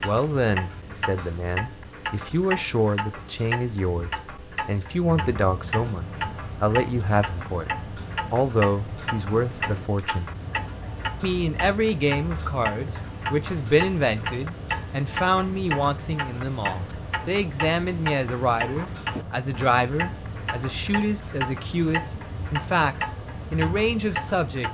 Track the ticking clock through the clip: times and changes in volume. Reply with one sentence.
The ticking clock can be heard from 0.0 to 24.6 s, at a steady volume.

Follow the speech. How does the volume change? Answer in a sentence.
The volume of the speech stays about the same.